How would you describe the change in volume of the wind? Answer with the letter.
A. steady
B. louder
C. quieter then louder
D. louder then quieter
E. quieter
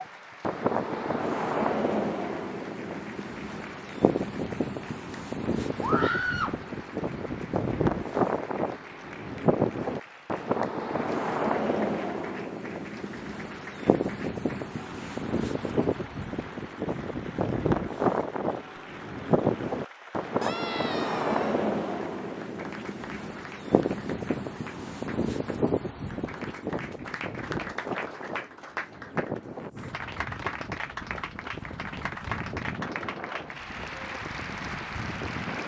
E.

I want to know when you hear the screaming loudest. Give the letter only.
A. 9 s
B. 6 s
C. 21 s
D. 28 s
B.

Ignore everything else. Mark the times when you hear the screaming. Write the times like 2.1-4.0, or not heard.
5.8-6.6, 20.4-21.6.